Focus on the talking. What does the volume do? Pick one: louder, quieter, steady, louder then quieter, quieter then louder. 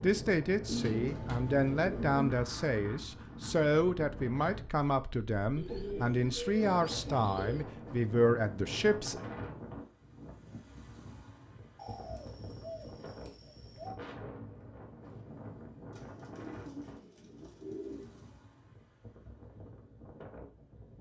steady.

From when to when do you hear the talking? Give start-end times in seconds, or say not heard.
0.0-9.2.